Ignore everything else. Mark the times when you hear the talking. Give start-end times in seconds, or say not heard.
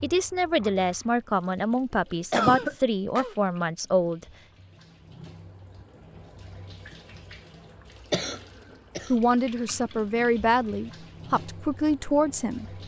0.0-4.2, 9.1-12.7.